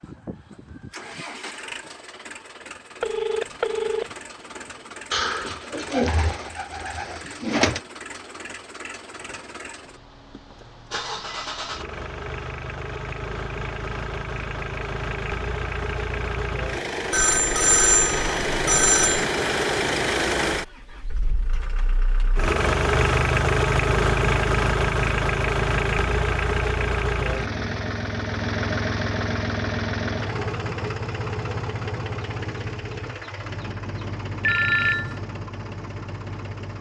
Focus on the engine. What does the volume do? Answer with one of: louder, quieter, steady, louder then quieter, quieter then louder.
louder then quieter.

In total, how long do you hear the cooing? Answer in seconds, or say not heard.
3 s.